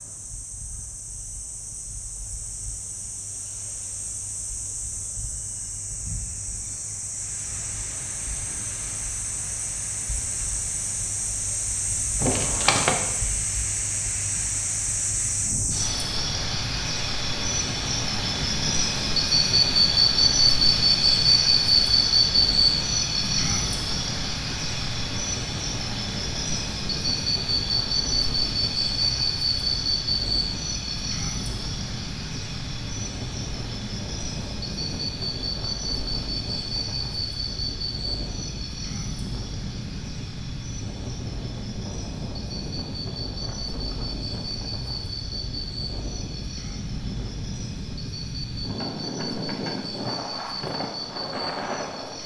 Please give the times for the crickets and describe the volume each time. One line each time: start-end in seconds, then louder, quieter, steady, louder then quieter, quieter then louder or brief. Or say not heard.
0.0-52.2 louder then quieter.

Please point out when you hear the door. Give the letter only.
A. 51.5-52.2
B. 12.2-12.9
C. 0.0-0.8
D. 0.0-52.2
B.